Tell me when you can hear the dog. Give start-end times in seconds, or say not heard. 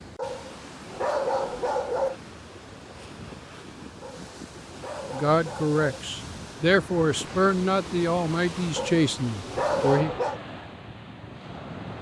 0.1-2.2, 4.0-6.0, 8.8-10.4.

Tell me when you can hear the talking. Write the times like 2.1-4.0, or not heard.
5.1-10.1.